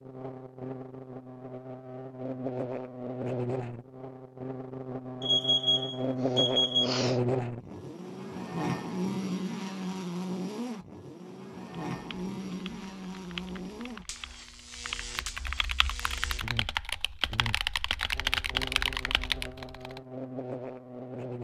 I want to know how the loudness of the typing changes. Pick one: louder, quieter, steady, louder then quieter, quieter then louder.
louder.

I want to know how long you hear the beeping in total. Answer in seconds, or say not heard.
2 s.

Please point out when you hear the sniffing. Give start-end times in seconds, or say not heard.
6.2-7.2.